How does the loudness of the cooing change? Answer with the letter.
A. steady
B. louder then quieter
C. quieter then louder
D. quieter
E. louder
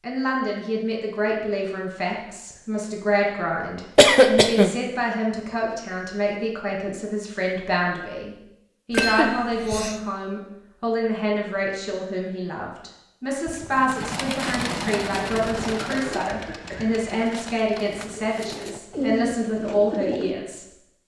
C.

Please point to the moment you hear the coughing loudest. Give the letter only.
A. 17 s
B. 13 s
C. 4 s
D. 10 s
C.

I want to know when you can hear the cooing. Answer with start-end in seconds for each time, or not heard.
13.4-20.4.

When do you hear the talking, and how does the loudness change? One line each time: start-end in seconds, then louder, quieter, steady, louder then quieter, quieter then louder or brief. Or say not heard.
0.0-21.0 steady.